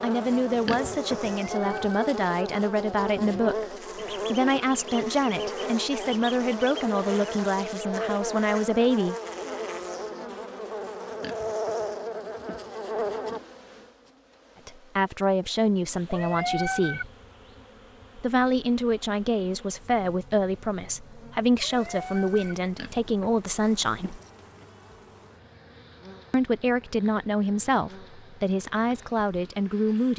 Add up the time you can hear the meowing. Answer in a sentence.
You can hear the meowing for 3 seconds altogether.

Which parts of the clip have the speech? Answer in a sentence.
You can hear the speech from 0.0 to 9.2 s, from 14.7 to 17.1 s, from 18.1 to 24.2 s and from 26.3 to 30.1 s.